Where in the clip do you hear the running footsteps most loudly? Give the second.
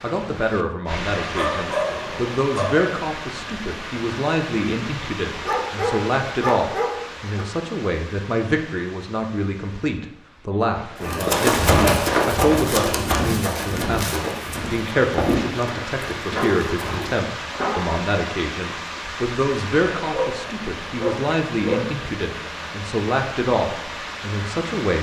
12 s.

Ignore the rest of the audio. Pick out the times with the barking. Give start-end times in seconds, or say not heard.
1.2-2.9, 5.4-7.5, 11.0-12.1, 16.3-18.0, 20.1-21.9.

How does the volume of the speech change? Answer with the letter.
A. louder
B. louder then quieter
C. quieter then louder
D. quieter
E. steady
E.